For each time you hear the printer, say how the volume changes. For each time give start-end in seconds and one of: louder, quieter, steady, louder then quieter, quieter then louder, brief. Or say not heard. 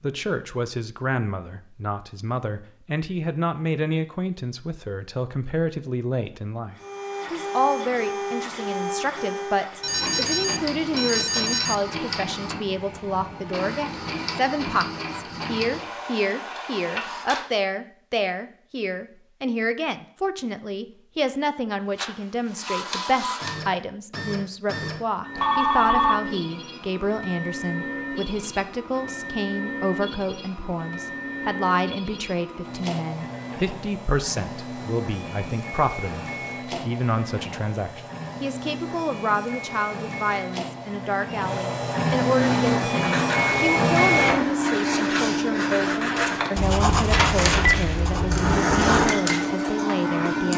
6.8-17.5 steady
21.9-50.5 louder.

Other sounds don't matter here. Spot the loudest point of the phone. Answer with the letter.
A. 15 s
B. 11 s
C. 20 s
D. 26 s
D.